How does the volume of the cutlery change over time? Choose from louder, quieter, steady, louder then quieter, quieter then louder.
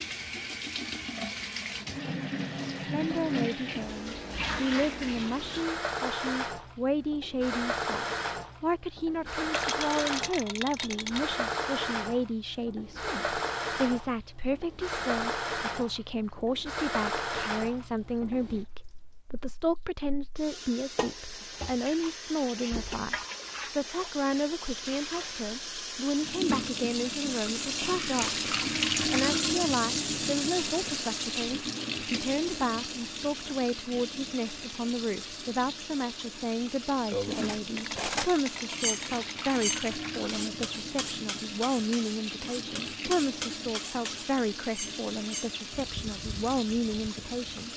quieter.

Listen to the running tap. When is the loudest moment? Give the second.
29 s.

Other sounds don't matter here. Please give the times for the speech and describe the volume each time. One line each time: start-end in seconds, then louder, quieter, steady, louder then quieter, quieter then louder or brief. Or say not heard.
2.8-47.7 steady.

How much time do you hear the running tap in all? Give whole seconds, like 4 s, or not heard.
48 s.